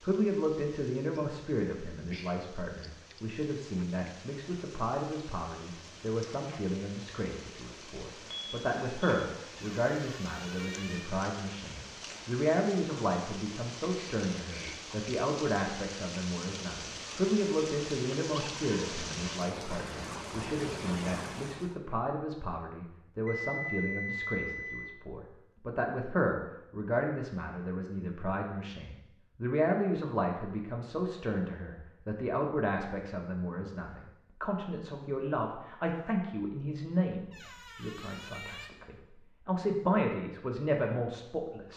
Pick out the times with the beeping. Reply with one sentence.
You can hear the beeping from 8.3 to 9.2 s and from 23.2 to 24.9 s.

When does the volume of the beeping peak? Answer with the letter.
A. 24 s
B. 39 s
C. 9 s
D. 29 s
A.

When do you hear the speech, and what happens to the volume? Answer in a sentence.
You can hear the speech from 0.0 to 41.7 s, at a steady volume.